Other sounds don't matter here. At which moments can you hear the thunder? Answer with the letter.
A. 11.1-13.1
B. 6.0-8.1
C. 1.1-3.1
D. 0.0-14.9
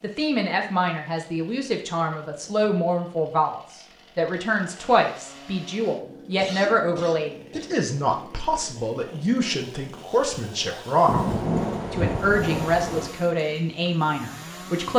A.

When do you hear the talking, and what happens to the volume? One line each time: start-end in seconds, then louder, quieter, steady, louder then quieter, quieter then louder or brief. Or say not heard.
0.0-14.9 steady.